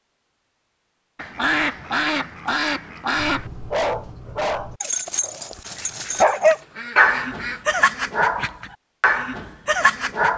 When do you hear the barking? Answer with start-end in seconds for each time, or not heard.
3.1-10.3.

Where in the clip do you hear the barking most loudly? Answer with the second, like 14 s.
6 s.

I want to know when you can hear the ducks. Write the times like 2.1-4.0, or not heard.
1.1-3.5, 5.8-7.7.